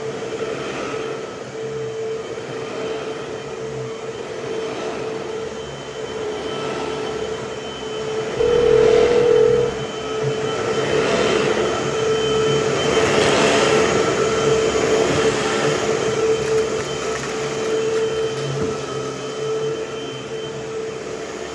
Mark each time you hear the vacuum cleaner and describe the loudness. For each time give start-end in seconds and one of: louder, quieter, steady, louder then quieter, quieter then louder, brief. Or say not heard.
0.0-21.4 louder then quieter.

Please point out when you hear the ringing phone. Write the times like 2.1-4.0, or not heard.
8.3-9.8.